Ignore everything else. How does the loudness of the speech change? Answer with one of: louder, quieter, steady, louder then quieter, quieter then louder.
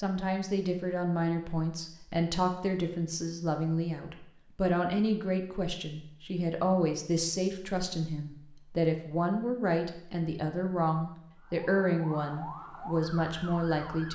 steady.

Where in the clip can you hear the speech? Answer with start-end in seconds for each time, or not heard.
0.0-14.1.